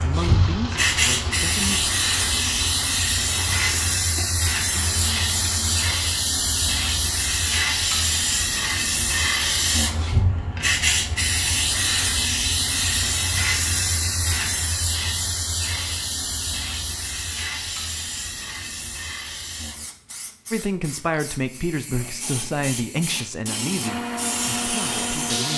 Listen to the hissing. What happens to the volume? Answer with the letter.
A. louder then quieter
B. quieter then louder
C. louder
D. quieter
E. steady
D.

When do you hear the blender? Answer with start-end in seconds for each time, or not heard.
0.2-6.0, 23.8-25.5.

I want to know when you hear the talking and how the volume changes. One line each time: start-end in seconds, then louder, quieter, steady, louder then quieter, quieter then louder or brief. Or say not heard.
0.0-1.9 brief
20.5-25.5 quieter.